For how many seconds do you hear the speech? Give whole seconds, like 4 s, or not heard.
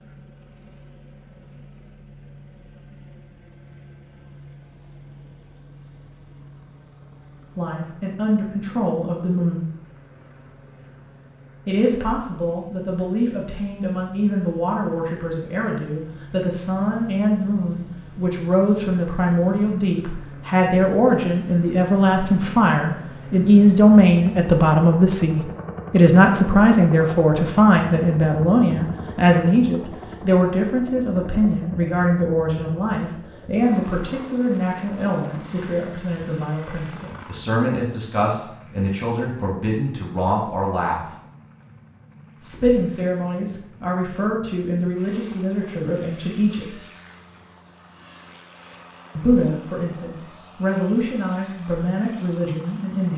40 s.